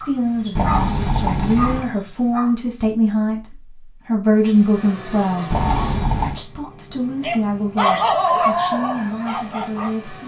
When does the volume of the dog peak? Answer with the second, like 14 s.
8 s.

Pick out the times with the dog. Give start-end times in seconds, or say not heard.
0.0-3.0, 7.2-10.1.